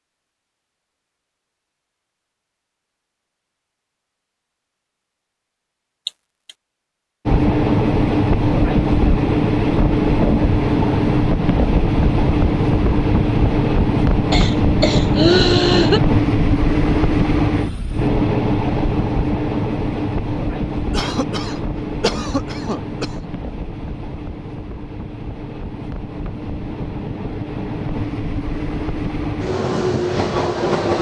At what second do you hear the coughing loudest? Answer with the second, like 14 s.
15 s.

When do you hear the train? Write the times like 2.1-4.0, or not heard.
7.2-30.9.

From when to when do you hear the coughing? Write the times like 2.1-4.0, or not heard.
6.0-6.5, 14.3-16.0, 20.9-23.2.